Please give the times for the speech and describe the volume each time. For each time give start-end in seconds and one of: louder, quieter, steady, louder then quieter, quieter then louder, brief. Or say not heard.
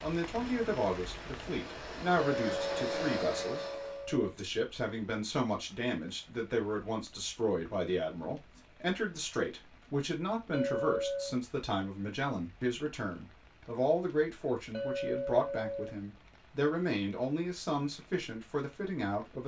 0.0-19.4 steady.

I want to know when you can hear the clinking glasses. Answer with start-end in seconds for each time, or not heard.
2.1-4.3, 10.5-11.3, 14.7-15.9.